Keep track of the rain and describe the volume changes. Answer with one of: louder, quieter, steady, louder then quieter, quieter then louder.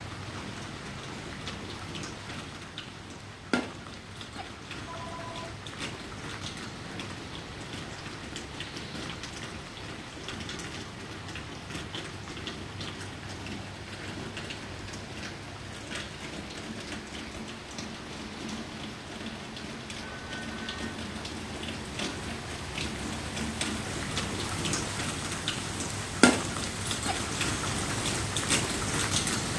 louder.